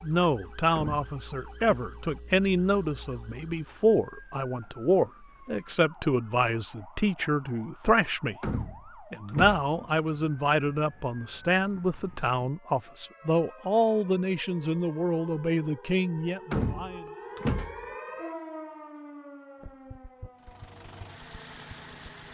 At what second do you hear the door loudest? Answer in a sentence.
The loudest moment of the door is at 17 seconds.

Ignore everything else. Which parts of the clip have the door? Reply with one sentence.
You can hear the door from 0.8 to 1.8 s, from 8.4 to 9.7 s and from 16.5 to 17.9 s.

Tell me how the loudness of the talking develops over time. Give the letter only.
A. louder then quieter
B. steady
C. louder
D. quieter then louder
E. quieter
B.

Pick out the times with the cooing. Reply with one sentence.
The cooing can't be heard in this clip.